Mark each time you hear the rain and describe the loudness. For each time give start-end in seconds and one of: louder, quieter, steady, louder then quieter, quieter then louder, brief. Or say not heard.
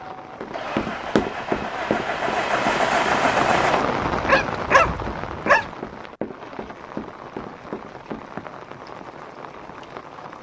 0.0-10.3 louder then quieter.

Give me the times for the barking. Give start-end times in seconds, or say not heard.
4.1-5.7.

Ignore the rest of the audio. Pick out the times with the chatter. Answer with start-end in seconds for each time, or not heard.
not heard.